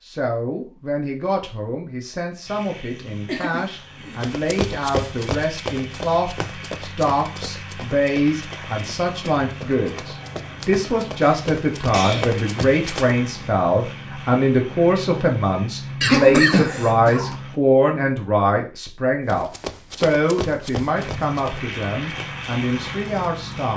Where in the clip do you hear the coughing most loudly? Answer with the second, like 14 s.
16 s.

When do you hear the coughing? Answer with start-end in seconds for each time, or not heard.
3.2-4.2, 11.2-12.3, 16.0-17.4.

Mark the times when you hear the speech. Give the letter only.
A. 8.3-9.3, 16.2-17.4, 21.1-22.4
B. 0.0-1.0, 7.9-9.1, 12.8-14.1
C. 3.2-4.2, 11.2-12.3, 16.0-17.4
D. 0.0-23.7
D.